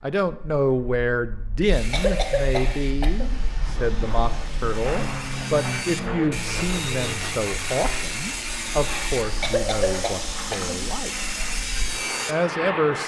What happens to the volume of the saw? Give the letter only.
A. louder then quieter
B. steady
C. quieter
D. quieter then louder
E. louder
E.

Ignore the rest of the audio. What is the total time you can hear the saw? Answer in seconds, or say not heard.
11 s.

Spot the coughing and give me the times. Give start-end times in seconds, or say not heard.
1.9-3.5, 9.4-10.9.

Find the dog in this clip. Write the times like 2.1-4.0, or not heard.
not heard.